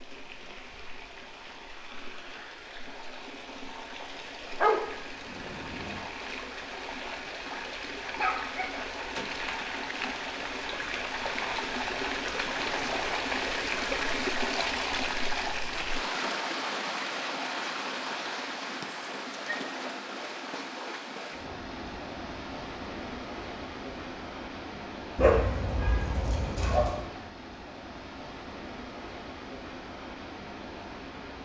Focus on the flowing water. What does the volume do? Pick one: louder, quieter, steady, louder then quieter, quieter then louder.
louder then quieter.